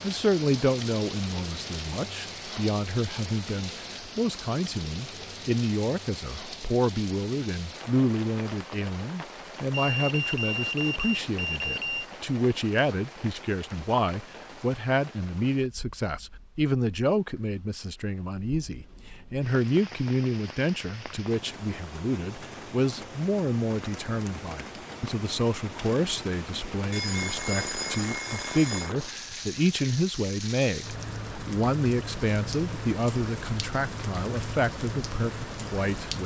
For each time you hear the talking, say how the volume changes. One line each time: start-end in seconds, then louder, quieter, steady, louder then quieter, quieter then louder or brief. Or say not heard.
0.0-36.2 steady.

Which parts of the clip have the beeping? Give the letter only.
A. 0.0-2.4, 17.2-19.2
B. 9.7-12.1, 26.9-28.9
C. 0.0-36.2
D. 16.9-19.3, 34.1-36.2
B.